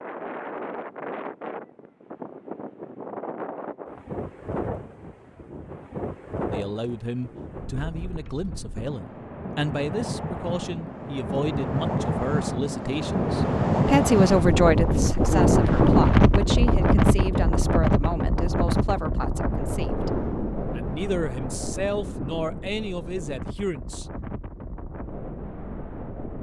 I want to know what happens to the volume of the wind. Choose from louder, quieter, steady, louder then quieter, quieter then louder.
louder then quieter.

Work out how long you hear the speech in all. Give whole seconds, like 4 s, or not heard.
17 s.